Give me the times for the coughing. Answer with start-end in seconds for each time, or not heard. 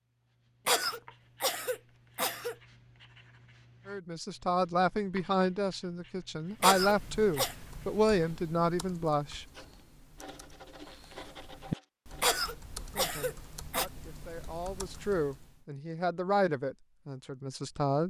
0.7-2.5, 6.6-7.5, 12.2-13.8.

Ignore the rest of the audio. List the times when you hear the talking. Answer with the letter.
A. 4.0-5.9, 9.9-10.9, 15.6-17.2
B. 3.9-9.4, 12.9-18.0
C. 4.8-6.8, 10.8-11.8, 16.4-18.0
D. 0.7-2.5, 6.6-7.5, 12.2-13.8
B.